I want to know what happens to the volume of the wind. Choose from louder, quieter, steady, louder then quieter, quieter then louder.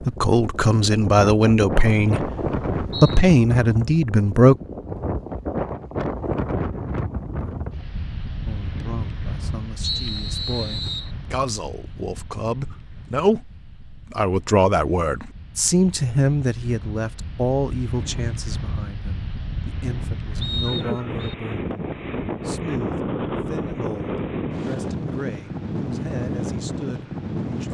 quieter then louder.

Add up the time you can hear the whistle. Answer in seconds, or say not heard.
4 s.